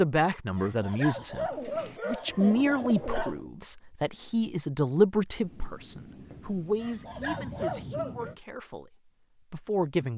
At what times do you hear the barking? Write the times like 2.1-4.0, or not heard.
0.6-3.4, 6.8-8.3.